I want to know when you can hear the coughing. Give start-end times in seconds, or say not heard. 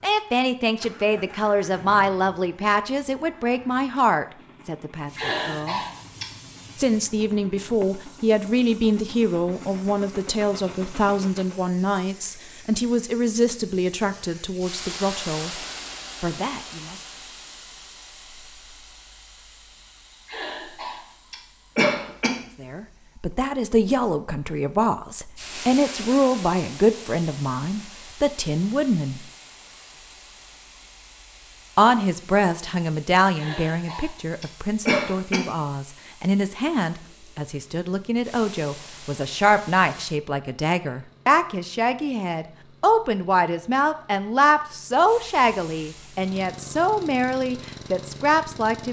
5.2-6.2, 20.3-22.3, 33.4-35.4.